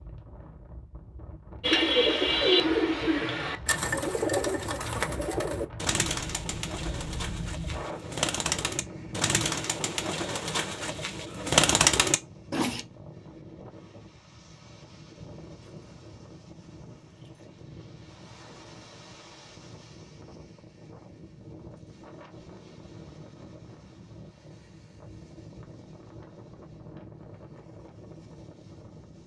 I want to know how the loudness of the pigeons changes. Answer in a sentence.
The volume of the pigeons goes down, then up.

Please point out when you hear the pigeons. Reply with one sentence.
The pigeons can be heard from 1.6 to 12.8 s.